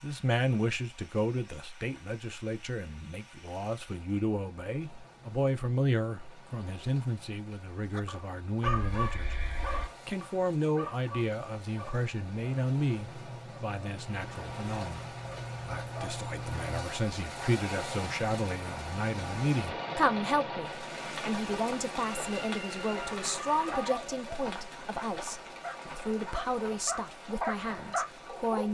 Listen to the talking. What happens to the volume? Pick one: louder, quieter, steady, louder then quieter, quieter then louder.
steady.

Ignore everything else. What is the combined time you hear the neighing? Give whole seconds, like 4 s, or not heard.
3 s.